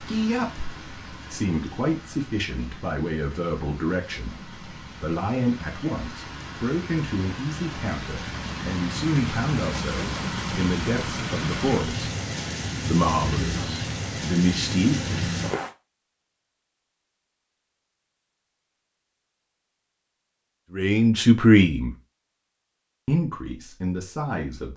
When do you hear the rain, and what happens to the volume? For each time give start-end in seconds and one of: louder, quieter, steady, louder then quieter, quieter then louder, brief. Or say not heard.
0.0-15.8 louder.